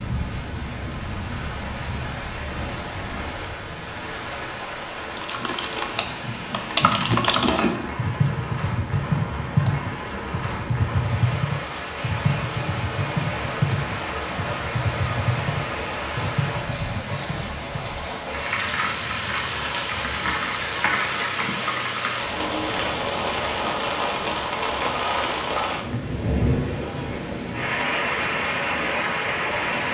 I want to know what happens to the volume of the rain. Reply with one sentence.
The volume of the rain goes up.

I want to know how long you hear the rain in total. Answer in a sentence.
The rain can be heard for 30 seconds in total.